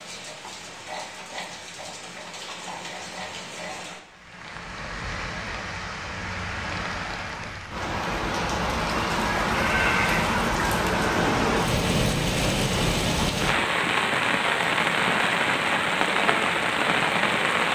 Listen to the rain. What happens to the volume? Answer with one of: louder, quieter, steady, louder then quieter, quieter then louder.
louder.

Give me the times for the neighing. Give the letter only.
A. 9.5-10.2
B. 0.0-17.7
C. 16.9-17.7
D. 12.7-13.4
A.